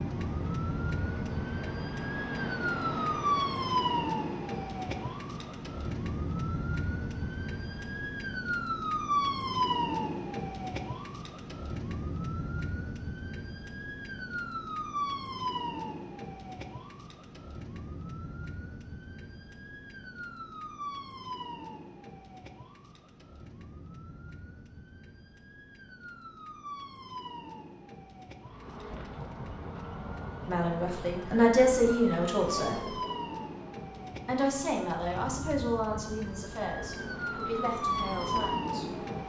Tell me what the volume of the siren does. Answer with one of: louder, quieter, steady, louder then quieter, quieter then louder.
quieter then louder.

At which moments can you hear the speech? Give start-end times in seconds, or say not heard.
30.4-32.9, 34.2-38.9.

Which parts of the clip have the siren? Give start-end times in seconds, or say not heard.
0.0-39.2.